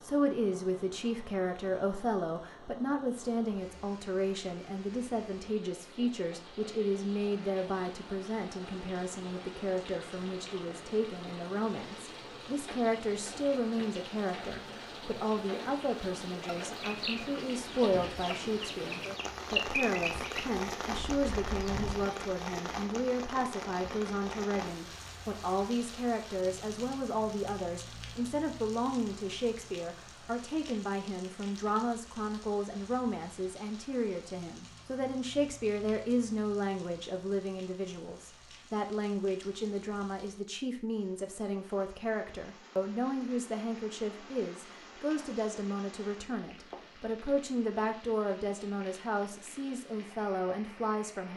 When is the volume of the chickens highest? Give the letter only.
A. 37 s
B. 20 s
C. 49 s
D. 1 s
B.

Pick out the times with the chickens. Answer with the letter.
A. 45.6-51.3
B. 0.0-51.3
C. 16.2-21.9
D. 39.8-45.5
C.